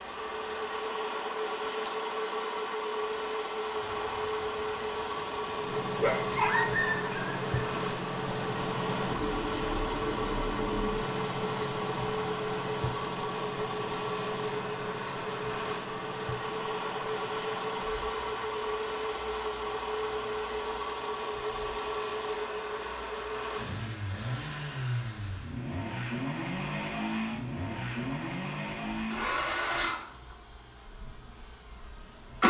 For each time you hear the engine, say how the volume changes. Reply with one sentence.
You can hear the engine from 0.0 to 32.4 s, at a steady volume.